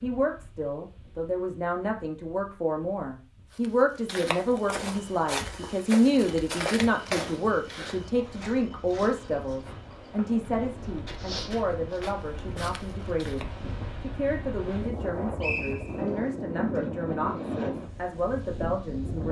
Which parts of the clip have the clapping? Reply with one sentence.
The clapping can't be heard in this clip.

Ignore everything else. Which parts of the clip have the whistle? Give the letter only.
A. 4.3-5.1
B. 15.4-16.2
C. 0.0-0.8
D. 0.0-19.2
B.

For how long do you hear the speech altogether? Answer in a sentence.
You can hear the speech for 19 seconds altogether.